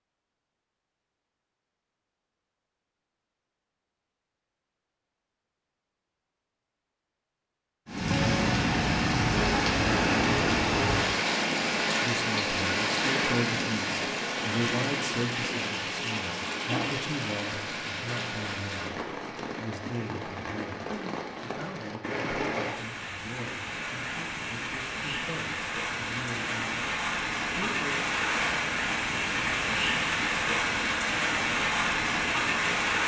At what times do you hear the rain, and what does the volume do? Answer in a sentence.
You can hear the rain from 7.8 to 33.0 s, getting quieter then louder.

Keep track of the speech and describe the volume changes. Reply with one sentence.
The loudness of the speech goes down.